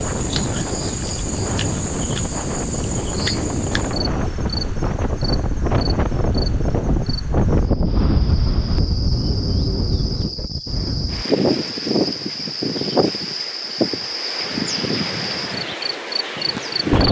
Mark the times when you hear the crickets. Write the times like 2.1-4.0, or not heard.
0.0-17.0.